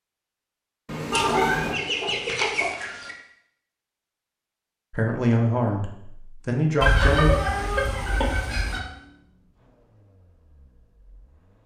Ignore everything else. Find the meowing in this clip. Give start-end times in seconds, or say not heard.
0.8-1.8, 7.2-8.2.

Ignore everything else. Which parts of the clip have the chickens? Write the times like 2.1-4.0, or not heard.
1.1-3.1, 6.8-8.8.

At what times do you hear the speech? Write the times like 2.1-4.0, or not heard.
4.9-7.4.